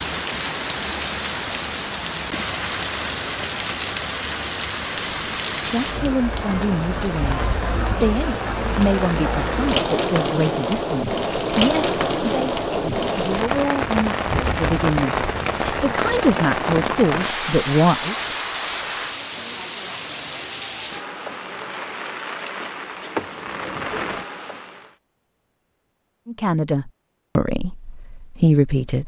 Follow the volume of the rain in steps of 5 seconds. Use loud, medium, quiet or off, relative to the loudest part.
loud, loud, loud, loud, medium, off.